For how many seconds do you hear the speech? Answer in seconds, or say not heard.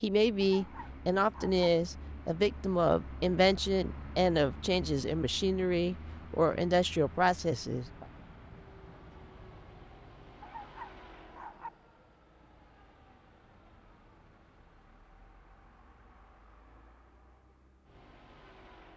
8 s.